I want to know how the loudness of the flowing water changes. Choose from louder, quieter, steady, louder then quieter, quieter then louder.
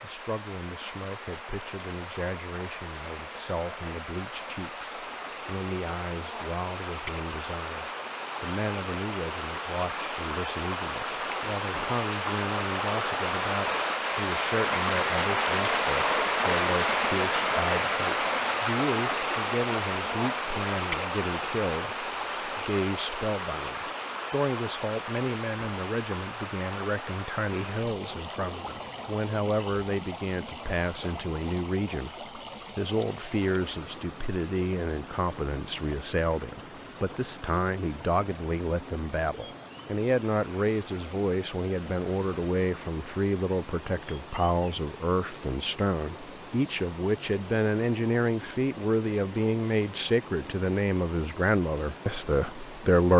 louder then quieter.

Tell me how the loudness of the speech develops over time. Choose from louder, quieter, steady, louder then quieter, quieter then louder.
louder.